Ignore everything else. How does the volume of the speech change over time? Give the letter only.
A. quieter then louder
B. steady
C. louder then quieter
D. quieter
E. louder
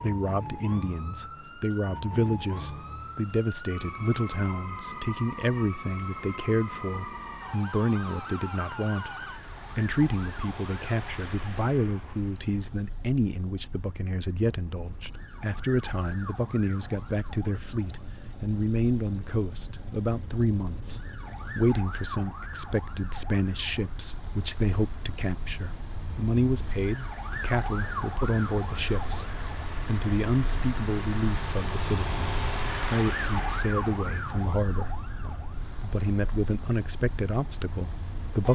B.